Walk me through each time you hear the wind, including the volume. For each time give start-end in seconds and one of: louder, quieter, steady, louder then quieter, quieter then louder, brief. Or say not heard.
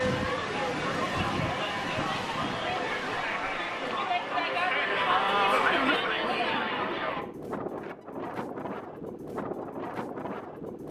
0.0-10.8 quieter then louder.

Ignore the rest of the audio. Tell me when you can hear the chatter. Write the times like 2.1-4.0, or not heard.
0.0-7.2.